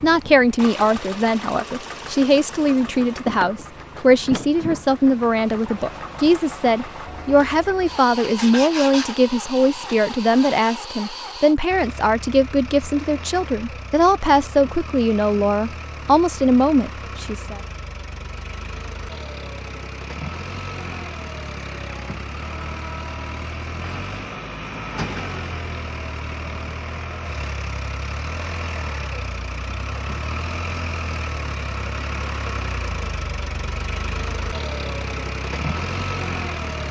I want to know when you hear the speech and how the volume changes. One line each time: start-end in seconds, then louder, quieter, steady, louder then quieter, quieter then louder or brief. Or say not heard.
0.0-17.6 steady.